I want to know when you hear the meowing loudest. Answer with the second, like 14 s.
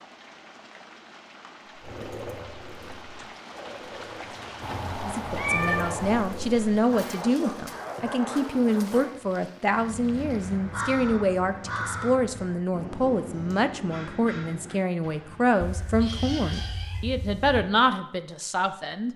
6 s.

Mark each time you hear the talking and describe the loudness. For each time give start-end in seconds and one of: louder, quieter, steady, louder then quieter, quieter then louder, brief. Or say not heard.
5.0-19.1 steady.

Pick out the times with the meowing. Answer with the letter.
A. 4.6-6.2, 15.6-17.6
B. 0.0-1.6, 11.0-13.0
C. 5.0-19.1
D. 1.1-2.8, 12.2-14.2
A.